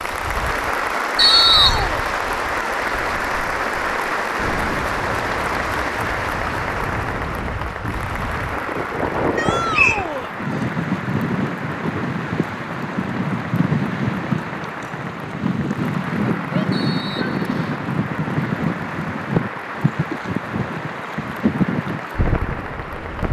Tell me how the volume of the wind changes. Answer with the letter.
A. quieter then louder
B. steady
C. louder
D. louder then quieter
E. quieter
C.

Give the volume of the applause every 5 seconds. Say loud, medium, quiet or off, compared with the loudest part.
loud, loud, medium, medium, medium.